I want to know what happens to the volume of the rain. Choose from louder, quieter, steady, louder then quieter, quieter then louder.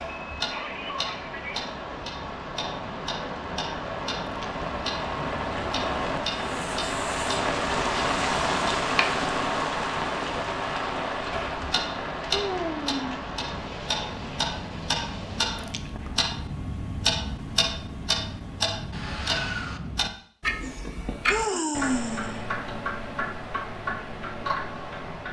louder then quieter.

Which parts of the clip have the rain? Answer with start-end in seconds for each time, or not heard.
0.0-15.8.